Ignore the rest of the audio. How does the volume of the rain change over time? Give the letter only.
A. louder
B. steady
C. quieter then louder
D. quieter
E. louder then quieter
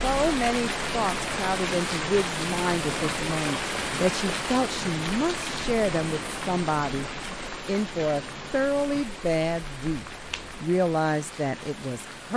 D.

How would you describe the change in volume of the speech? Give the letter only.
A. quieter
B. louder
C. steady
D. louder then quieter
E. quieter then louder
C.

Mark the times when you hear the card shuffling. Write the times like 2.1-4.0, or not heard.
9.8-10.6.